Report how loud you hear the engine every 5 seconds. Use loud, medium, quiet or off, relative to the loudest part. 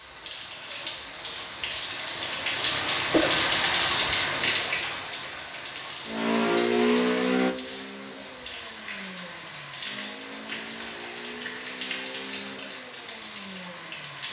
off, loud, quiet.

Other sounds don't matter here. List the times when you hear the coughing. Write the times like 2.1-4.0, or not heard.
3.1-3.5.